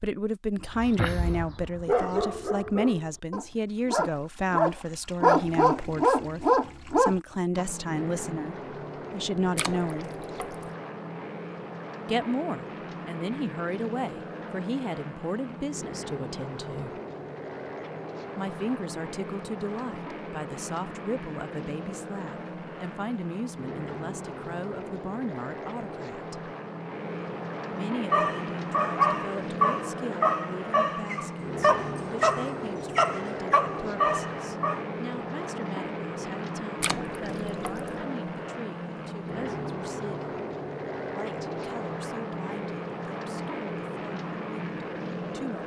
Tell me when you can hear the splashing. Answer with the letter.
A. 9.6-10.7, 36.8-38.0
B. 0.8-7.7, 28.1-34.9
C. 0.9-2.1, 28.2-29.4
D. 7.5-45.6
A.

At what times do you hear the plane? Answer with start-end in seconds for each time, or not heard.
7.5-45.6.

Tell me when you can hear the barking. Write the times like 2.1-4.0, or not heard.
0.8-7.7, 28.1-34.9.